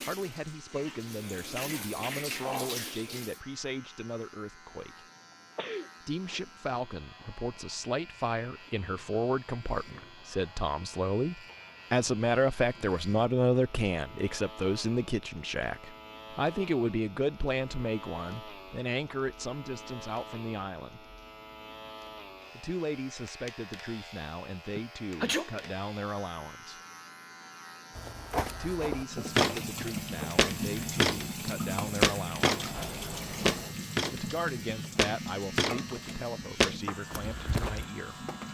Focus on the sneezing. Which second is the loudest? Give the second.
25 s.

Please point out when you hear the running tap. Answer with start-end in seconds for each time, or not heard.
0.0-3.4, 29.1-38.5.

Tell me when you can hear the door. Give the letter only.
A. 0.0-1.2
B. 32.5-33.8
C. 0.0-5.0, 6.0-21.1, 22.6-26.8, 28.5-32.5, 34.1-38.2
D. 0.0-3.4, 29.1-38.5
B.